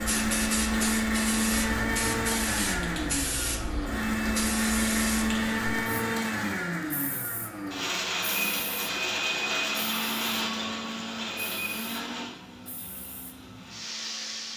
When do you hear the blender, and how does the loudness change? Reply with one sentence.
The blender can be heard from 0.0 to 14.5 s, getting quieter.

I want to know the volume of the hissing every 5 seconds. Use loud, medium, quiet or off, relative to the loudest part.
loud, medium, medium.